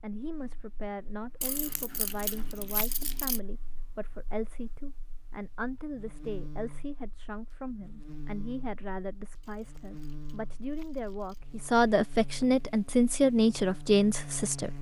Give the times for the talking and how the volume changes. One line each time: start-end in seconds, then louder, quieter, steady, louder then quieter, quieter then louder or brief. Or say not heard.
0.0-14.7 louder.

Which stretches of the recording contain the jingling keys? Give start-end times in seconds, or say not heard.
1.4-3.4, 9.4-11.4.